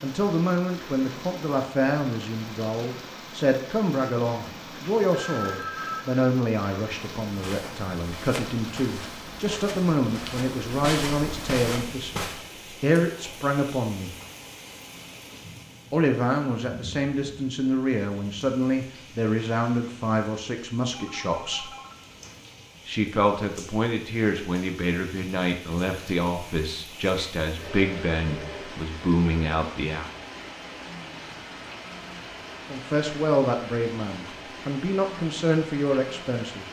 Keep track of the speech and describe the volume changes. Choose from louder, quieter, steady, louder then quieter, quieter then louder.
steady.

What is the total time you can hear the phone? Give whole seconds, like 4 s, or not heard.
4 s.